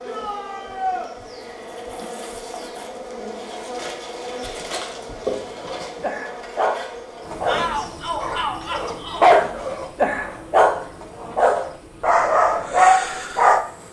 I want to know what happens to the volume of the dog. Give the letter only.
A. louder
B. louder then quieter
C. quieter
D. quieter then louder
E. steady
A.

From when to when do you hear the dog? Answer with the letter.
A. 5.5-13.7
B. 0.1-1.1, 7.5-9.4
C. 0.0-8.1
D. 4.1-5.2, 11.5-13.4
A.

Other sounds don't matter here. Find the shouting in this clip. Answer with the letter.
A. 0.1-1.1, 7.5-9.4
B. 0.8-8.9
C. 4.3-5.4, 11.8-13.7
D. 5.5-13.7
A.